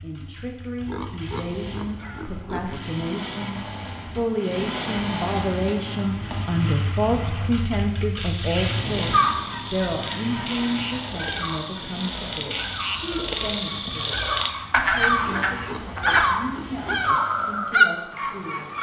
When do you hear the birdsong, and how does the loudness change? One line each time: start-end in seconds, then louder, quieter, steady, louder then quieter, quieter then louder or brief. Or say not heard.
9.1-18.7 louder.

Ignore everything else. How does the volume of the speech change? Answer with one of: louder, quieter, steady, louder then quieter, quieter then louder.
louder then quieter.